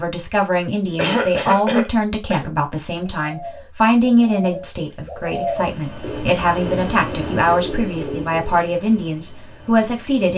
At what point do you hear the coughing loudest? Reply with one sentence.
The volume of the coughing peaks at 1 second.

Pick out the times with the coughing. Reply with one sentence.
You can hear the coughing from 0.9 to 2.5 s and from 6.8 to 7.6 s.